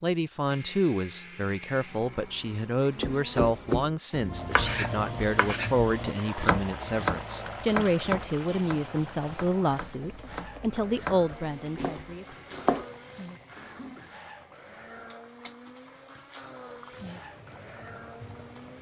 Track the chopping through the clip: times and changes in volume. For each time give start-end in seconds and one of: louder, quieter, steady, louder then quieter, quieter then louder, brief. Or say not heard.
3.0-12.8 quieter then louder.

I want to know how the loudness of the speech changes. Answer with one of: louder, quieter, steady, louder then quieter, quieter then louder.
steady.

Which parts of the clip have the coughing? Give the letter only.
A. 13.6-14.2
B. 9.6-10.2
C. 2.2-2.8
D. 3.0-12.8
A.